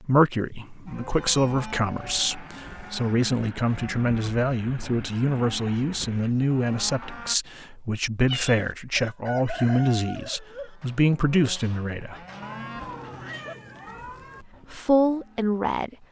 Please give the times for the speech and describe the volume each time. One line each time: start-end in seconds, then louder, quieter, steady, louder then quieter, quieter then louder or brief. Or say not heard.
0.0-12.2 steady
14.7-15.9 brief.